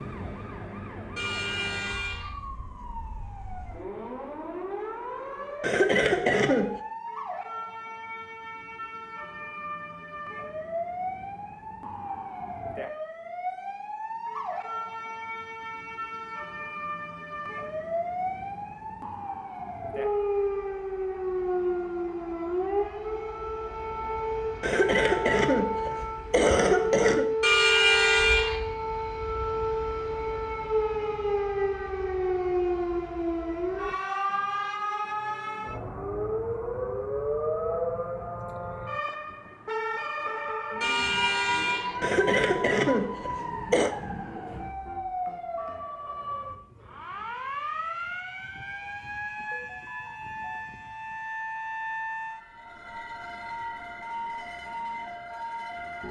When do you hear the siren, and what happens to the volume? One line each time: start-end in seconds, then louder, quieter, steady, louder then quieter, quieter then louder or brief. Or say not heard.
0.0-56.0 louder then quieter.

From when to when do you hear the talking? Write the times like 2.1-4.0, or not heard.
not heard.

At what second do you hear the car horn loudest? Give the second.
28 s.